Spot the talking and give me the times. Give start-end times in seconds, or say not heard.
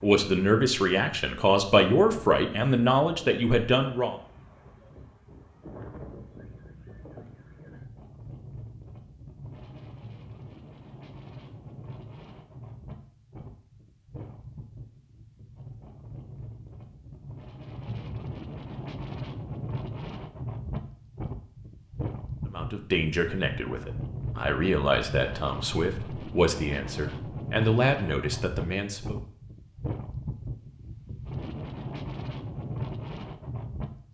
0.0-4.2, 22.4-29.2.